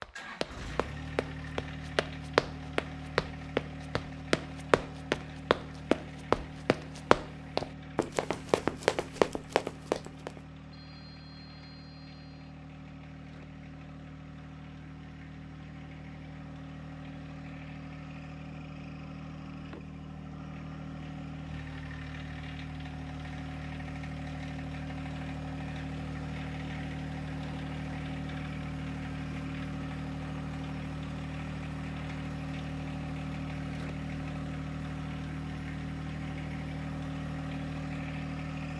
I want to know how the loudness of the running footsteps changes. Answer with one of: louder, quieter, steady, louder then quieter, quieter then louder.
louder.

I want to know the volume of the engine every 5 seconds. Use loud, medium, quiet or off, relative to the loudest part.
medium, medium, medium, medium, loud, loud, loud, loud.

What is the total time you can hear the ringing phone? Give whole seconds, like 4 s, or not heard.
2 s.